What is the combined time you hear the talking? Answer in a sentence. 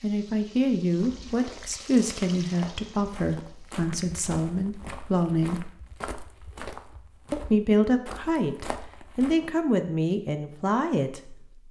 The talking can be heard for 10 seconds in total.